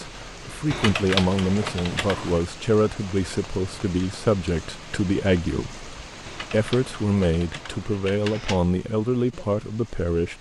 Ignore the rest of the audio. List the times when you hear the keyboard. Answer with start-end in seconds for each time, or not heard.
0.7-2.4, 6.2-8.7.